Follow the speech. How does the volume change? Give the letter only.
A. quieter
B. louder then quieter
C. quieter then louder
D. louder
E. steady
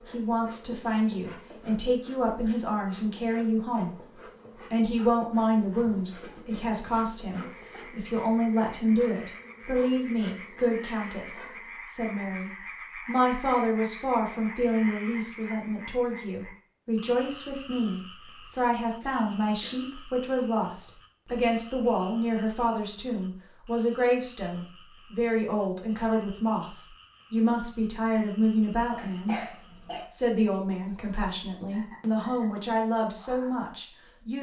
E.